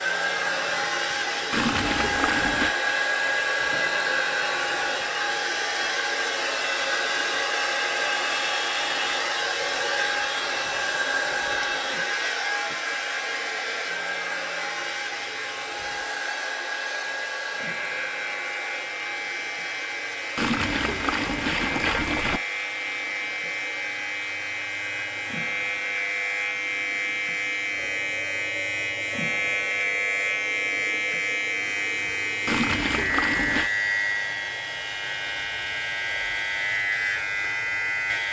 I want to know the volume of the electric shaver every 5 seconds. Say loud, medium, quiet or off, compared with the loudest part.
quiet, quiet, quiet, medium, medium, loud, loud, loud.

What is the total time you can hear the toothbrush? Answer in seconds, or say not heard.
not heard.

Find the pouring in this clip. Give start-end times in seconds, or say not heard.
1.5-2.8, 20.4-22.4, 32.5-33.7.